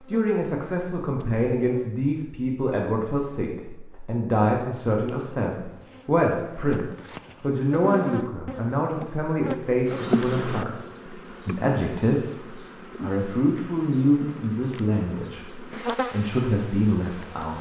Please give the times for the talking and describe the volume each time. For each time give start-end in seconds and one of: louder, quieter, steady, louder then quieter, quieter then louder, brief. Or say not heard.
0.1-17.5 steady.